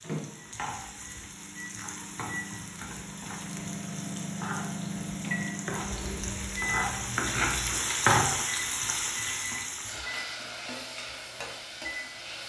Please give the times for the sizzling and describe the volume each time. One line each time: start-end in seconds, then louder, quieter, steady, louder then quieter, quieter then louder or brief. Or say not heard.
0.0-12.4 louder then quieter.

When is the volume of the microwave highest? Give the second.
5 s.